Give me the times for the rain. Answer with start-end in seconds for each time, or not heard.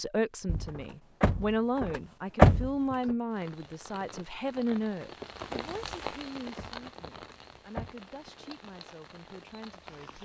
3.3-10.1.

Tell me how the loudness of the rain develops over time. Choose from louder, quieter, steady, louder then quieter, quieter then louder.
louder then quieter.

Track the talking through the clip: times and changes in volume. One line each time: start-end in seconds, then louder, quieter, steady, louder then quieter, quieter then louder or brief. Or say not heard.
0.0-10.1 quieter.